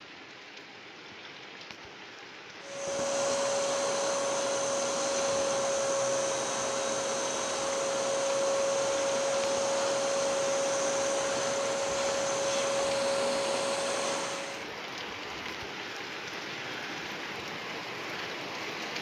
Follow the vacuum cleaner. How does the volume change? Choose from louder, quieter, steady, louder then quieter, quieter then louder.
steady.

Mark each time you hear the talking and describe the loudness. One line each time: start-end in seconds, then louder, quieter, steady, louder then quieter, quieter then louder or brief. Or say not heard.
not heard.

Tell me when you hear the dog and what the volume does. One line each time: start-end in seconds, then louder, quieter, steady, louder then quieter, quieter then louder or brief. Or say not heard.
not heard.